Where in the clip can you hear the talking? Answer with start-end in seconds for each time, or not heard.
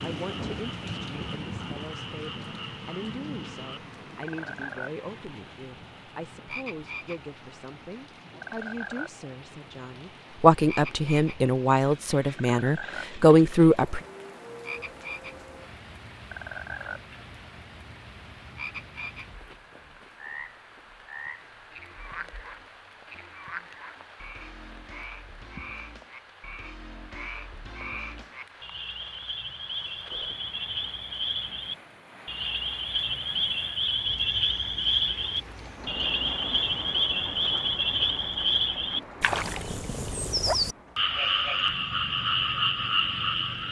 0.0-14.0.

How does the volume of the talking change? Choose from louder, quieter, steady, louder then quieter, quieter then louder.
louder.